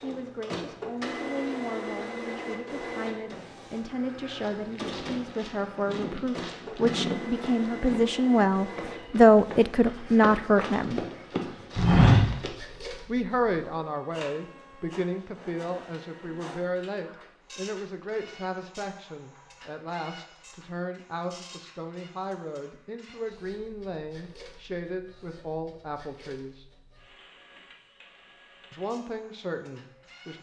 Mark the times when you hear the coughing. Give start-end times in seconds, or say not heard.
not heard.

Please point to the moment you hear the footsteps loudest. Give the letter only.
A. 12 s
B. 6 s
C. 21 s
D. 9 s
A.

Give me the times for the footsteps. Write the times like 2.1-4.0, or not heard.
4.4-12.5.